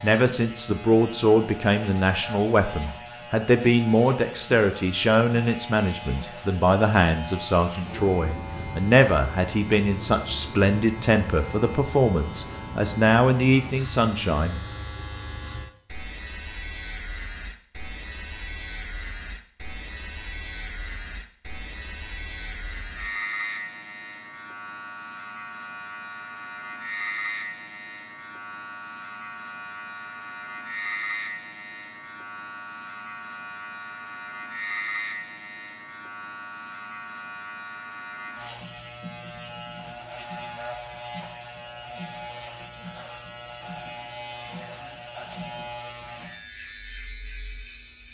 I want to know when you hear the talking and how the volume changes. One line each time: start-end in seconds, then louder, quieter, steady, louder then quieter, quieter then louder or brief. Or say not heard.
0.0-14.6 steady.